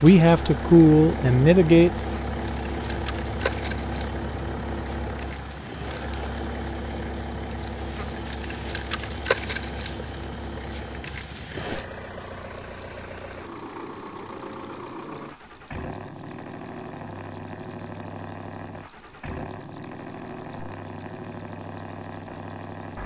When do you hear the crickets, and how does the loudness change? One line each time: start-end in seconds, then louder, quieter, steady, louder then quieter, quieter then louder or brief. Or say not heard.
0.0-23.0 louder.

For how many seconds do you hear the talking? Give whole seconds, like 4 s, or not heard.
2 s.